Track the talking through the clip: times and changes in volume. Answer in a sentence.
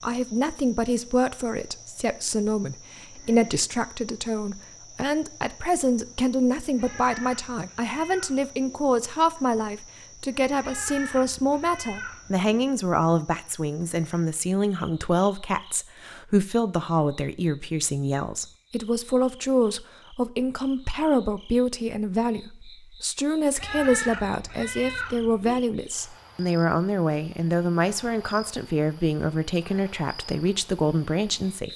You can hear the talking from 0.0 to 31.7 s, at a steady volume.